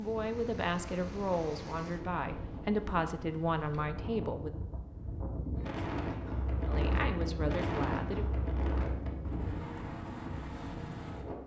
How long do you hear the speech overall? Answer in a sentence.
The speech can be heard for 6 seconds in total.